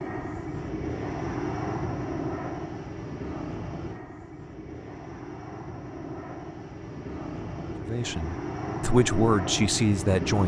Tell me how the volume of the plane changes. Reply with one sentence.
The volume of the plane goes down, then up.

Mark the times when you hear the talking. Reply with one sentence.
You can hear the talking from 7.8 to 10.4 s.